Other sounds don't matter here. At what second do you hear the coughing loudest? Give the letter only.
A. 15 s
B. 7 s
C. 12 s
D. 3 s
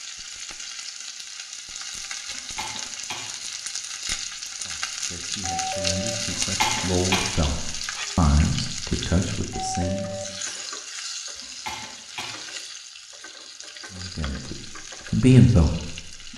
B.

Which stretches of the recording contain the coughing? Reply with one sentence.
The coughing can be heard from 2.2 to 3.2 s, from 6.3 to 7.3 s and from 11.3 to 12.3 s.